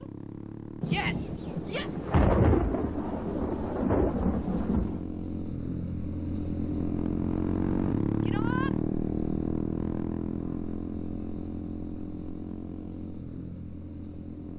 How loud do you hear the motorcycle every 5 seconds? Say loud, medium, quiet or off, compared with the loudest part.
medium, loud, medium.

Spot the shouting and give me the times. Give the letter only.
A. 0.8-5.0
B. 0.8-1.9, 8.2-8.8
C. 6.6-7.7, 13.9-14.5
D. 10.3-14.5
B.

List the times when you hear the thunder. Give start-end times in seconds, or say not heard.
0.8-5.0.